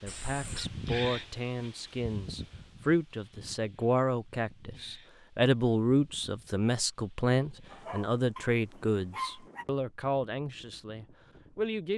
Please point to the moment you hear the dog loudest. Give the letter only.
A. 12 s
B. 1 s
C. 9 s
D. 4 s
C.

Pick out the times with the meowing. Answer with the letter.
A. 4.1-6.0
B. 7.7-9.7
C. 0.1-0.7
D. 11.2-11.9
C.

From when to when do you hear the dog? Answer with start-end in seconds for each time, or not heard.
7.7-9.7.